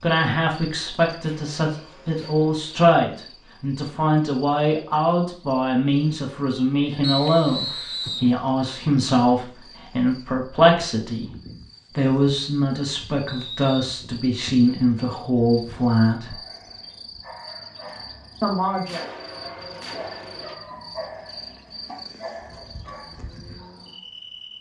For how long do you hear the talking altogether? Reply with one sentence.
You can hear the talking for 16 seconds altogether.